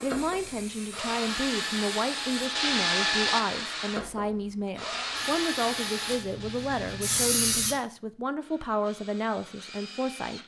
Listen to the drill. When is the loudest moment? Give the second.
3 s.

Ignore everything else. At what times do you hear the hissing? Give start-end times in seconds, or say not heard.
0.0-2.5, 5.2-7.8.